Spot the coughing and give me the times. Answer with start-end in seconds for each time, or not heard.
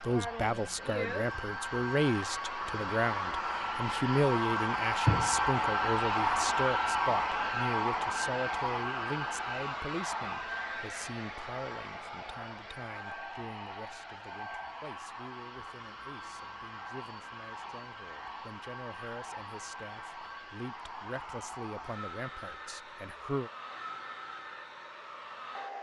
not heard.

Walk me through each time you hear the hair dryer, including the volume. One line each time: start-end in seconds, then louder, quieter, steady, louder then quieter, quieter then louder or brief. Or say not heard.
0.0-25.7 quieter.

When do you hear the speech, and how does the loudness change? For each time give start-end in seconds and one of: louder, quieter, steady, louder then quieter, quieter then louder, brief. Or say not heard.
0.0-23.5 quieter then louder.